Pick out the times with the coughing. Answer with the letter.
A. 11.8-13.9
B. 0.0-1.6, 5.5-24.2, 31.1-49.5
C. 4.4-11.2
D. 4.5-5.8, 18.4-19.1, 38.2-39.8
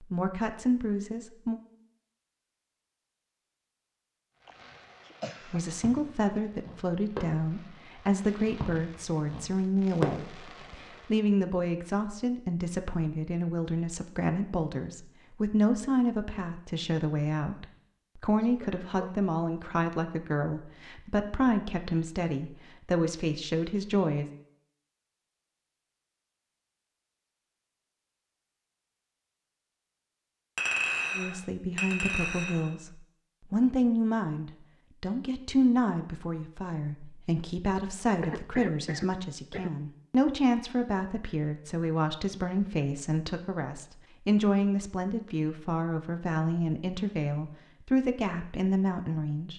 D.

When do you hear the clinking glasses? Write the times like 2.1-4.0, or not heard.
30.6-32.7.